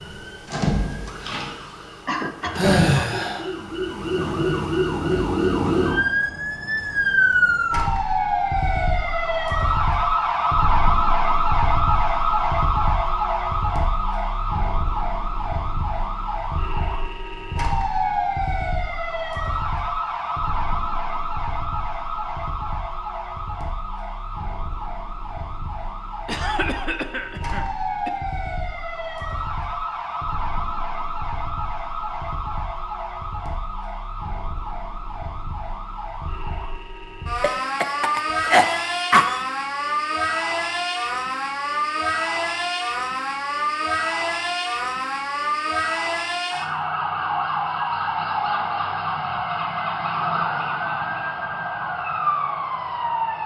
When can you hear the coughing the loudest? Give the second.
39 s.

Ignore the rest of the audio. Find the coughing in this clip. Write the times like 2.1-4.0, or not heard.
2.0-3.0, 26.2-28.1, 37.4-39.5.